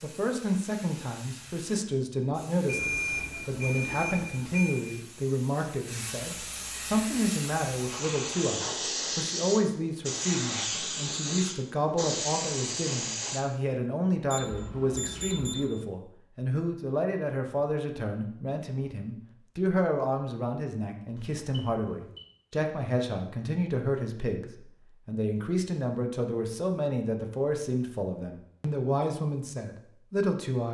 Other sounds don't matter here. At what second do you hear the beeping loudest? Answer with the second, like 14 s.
3 s.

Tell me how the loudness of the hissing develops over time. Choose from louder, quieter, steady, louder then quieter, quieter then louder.
louder.